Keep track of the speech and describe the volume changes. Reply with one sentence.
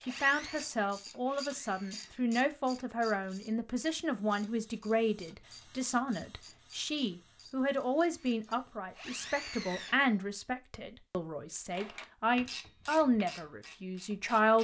The volume of the speech stays about the same.